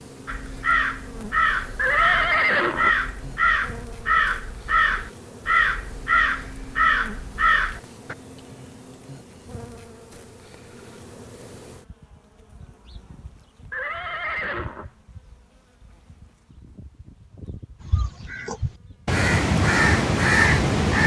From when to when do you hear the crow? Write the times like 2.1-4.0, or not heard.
0.2-8.2, 17.9-21.0.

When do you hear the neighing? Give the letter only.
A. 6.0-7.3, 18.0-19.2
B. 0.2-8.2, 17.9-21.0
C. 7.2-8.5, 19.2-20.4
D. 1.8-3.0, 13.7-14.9
D.